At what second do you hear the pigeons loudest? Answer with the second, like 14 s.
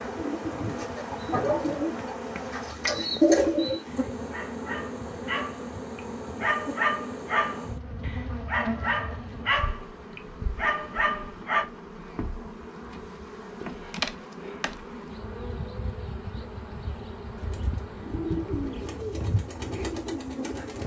3 s.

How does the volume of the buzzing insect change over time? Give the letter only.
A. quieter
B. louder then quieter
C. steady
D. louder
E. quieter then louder
C.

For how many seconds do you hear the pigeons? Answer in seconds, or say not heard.
7 s.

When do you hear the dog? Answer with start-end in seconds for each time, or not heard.
1.3-11.7.